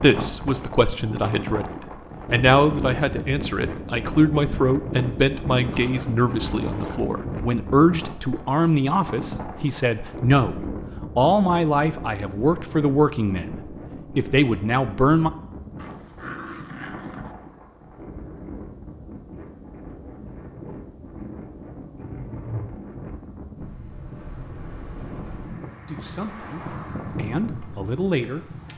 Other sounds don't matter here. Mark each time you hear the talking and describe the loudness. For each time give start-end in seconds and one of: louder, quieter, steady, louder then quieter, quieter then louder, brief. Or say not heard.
0.0-15.3 steady
25.9-28.7 brief.